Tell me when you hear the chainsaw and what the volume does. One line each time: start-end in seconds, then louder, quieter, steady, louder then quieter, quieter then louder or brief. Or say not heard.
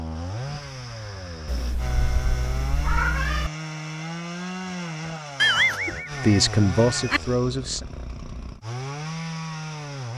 0.0-10.1 steady.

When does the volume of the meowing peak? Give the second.
6 s.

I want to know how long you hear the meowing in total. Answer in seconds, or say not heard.
4 s.